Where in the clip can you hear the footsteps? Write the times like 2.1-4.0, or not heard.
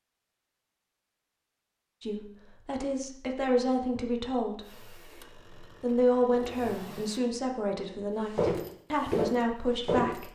8.2-10.2.